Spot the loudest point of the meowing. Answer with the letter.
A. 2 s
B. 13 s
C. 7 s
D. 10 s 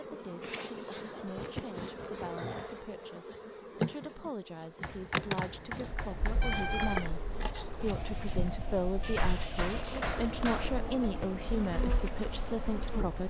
C.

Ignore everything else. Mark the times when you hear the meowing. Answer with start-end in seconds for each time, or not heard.
1.2-2.6, 6.4-7.0, 9.0-10.2.